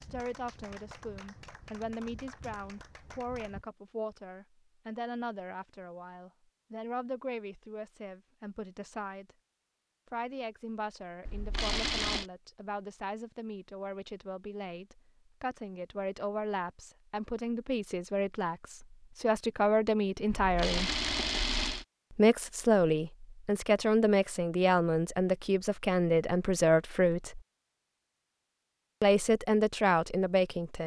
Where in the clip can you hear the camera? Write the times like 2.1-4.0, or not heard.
11.2-12.2, 20.3-21.9.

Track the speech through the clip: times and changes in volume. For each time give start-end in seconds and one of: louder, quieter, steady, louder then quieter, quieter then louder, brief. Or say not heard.
0.0-9.3 steady
10.1-20.9 louder
22.1-27.4 steady
29.0-30.8 brief.